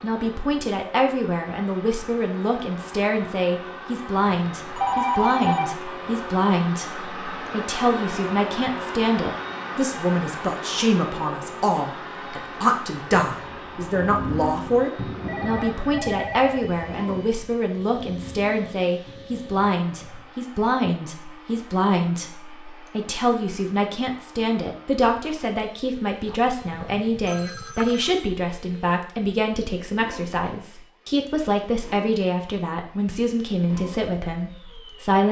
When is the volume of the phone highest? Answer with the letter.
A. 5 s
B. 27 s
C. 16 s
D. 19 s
A.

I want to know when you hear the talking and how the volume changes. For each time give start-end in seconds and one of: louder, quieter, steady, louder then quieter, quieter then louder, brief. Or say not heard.
0.0-35.2 steady.